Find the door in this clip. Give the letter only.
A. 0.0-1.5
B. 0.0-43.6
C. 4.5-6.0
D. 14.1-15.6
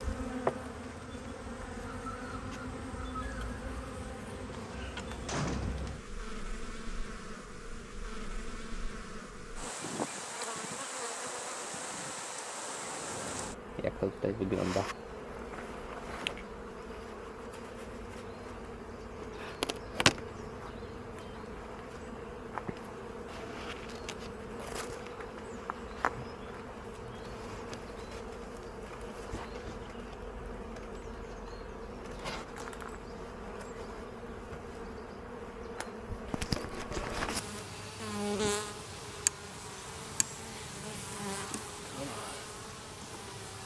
C.